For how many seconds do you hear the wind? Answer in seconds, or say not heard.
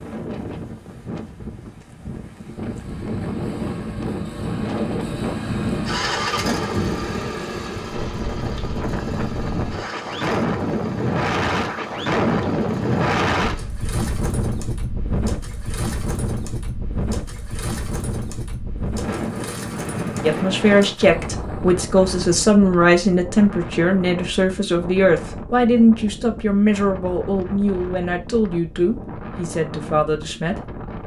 31 s.